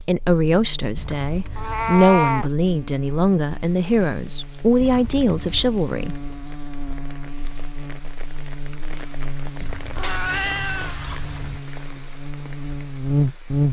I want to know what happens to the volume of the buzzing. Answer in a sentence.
The volume of the buzzing goes up.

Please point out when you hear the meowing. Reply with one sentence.
The meowing can be heard from 1.6 to 2.5 s and from 9.9 to 11.2 s.